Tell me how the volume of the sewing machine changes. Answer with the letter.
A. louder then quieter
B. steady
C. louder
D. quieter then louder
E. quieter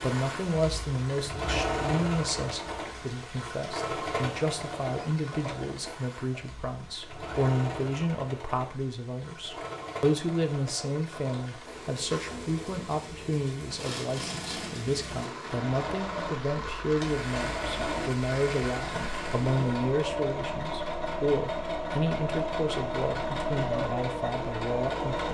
D.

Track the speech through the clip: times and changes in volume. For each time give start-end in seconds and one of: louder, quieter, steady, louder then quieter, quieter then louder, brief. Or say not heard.
0.0-25.3 steady.